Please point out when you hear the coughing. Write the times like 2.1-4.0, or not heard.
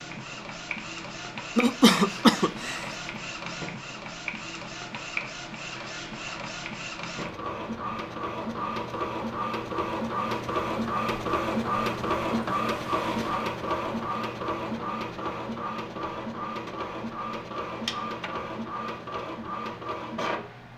1.6-2.9.